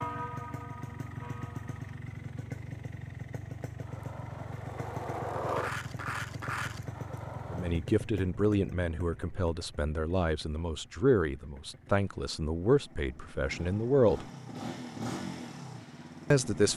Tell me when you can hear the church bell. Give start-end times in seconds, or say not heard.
0.0-2.0.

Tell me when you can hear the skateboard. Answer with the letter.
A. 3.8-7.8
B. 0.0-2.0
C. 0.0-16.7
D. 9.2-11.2
A.